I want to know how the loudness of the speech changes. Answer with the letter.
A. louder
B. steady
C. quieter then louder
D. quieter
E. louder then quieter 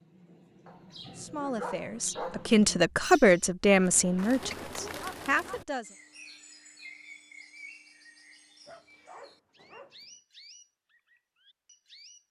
E.